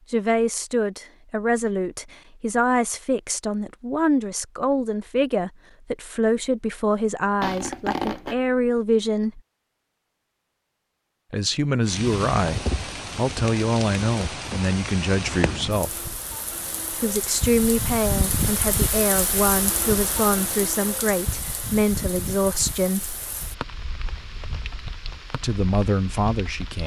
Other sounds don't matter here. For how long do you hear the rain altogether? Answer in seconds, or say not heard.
15 s.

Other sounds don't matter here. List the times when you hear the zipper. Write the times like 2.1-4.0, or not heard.
7.4-8.3.